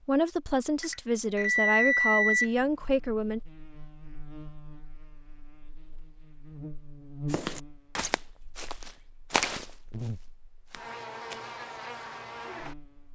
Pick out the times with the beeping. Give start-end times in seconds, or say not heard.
0.8-2.5.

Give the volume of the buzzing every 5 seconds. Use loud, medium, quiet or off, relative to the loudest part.
medium, loud, loud.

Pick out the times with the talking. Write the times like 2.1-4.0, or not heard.
0.1-3.4.